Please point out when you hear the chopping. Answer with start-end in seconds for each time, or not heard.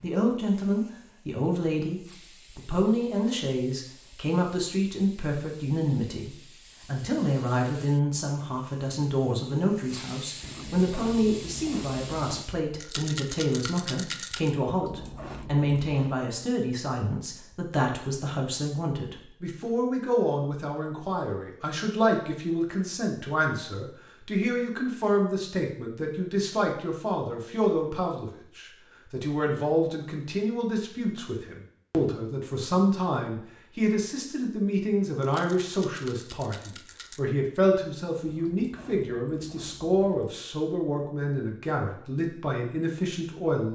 not heard.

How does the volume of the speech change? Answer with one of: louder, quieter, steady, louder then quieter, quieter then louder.
steady.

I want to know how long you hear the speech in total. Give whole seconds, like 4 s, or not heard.
44 s.